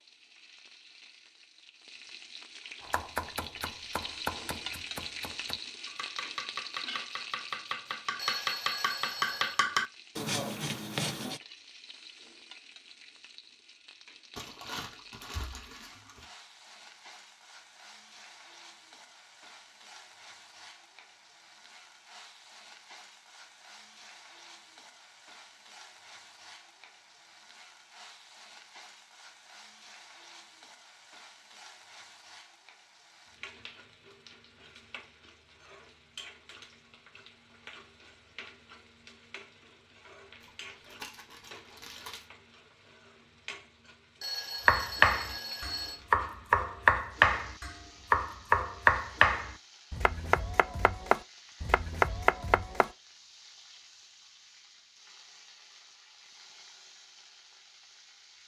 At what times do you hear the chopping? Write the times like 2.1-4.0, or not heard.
2.8-11.4, 44.6-52.9.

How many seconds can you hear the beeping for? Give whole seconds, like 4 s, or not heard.
3 s.